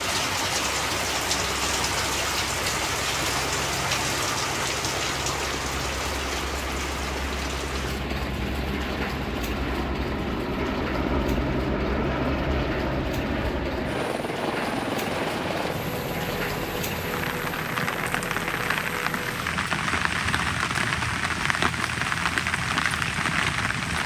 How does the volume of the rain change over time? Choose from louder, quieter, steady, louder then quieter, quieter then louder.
quieter then louder.